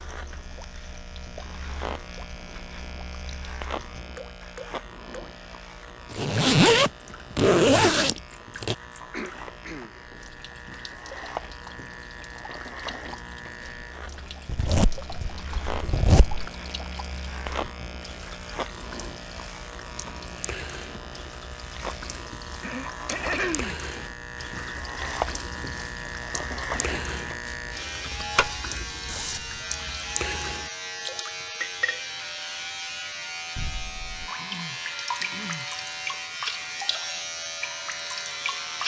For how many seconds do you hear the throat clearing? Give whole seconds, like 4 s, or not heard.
4 s.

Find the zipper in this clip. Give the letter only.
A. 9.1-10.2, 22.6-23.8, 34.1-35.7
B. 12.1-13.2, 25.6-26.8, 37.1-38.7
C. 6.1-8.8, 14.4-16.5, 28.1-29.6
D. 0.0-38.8
C.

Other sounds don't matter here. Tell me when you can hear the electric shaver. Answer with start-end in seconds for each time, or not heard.
0.0-38.8.